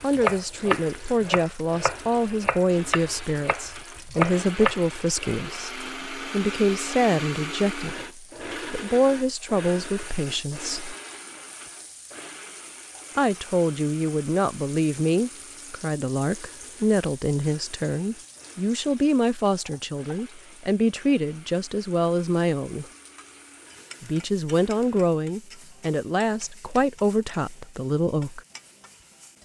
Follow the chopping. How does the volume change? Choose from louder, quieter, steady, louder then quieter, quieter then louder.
quieter then louder.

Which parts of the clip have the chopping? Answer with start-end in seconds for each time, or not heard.
0.0-4.8.